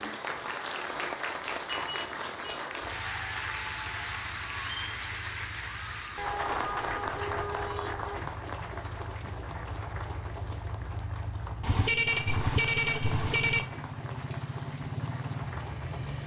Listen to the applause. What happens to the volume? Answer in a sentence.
The volume of the applause goes down.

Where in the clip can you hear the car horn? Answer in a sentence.
You can hear the car horn from 1.6 to 2.6 s, from 6.2 to 8.2 s and from 11.6 to 13.7 s.